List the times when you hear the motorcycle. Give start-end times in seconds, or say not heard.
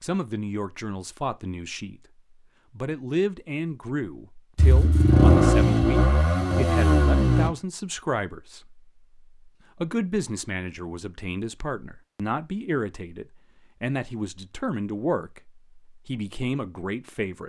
4.5-7.5.